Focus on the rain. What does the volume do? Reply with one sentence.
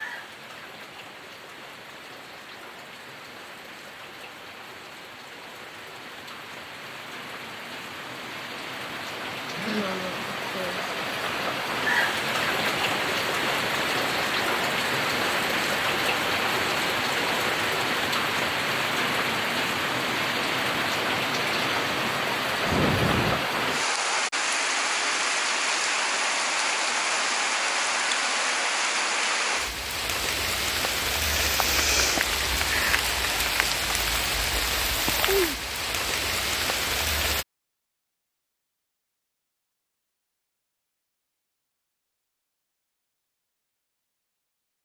The volume of the rain goes up.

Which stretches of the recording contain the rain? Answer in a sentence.
You can hear the rain from 0.0 to 37.5 s.